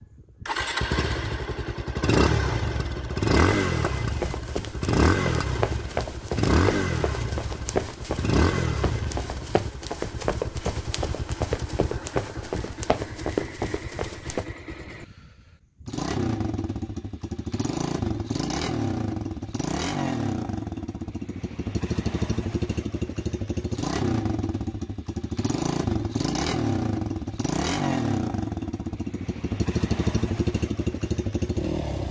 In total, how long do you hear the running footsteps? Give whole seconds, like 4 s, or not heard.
11 s.